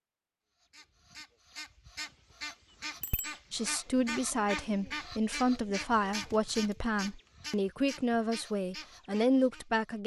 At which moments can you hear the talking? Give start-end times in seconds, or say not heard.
3.5-10.0.